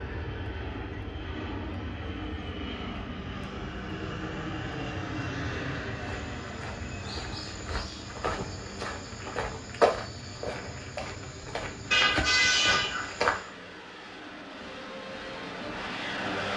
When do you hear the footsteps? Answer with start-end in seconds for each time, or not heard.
5.9-13.5.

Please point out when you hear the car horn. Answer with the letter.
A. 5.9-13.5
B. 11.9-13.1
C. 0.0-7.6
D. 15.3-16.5
B.